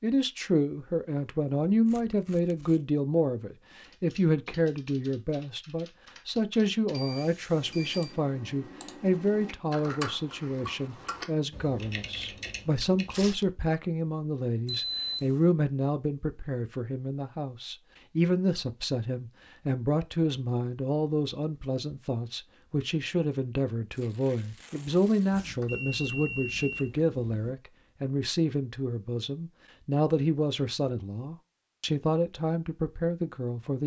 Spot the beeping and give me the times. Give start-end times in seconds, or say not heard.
6.9-8.2, 14.7-15.4, 25.3-27.6.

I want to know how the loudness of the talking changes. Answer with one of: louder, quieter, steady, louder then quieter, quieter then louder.
steady.